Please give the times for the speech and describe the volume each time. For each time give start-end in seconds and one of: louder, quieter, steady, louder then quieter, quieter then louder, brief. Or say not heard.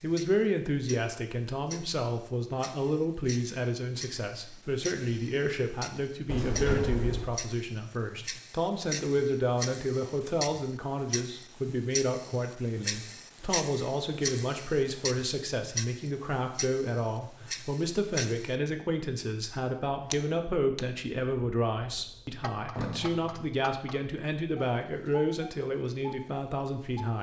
0.0-27.1 steady.